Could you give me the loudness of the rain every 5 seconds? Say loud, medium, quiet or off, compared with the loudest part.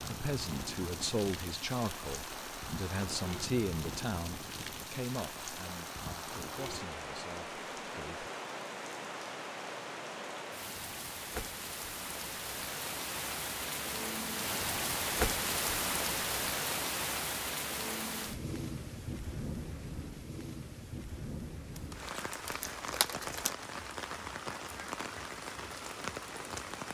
medium, medium, loud, loud, medium, medium.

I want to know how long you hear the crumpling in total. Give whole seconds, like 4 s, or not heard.
2 s.